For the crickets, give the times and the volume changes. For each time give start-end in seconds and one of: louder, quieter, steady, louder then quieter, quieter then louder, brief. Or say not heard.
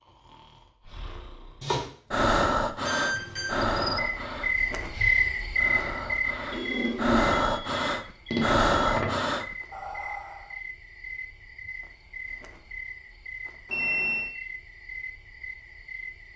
3.0-16.3 quieter.